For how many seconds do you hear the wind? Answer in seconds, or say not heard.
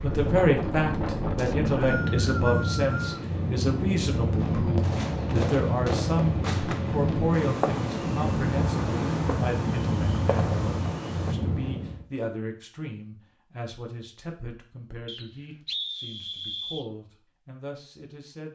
12 s.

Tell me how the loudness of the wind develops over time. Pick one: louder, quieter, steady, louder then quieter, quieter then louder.
steady.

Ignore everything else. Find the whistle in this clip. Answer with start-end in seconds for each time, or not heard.
1.4-3.2, 15.1-16.9.